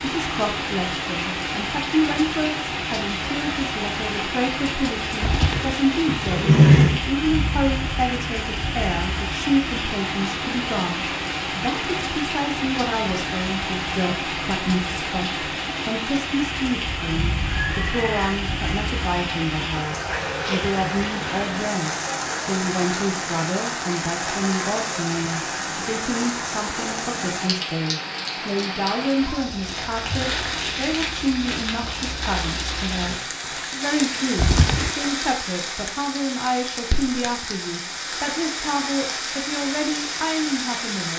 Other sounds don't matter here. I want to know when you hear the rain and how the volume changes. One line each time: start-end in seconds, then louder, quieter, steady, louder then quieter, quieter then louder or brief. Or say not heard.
0.0-41.1 steady.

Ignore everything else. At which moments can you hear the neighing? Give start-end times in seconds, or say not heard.
5.2-7.0, 17.6-18.4, 34.4-34.9.